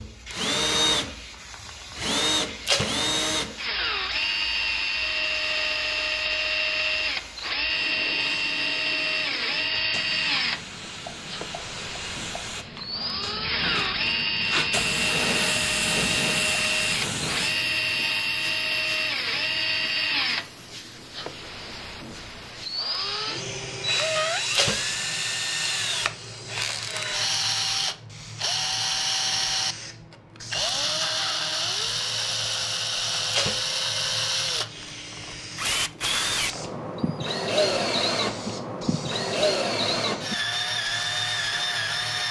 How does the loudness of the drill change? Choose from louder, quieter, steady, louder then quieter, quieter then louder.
steady.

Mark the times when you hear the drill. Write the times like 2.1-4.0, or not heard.
0.0-42.2.